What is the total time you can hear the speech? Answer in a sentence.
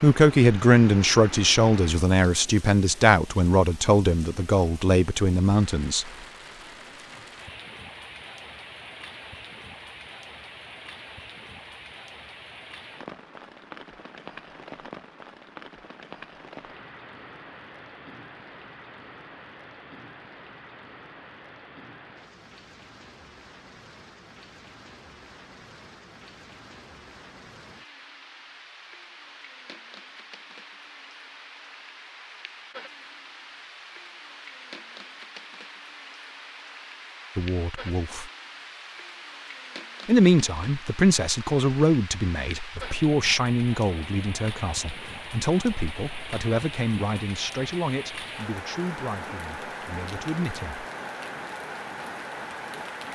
You can hear the speech for 18 seconds altogether.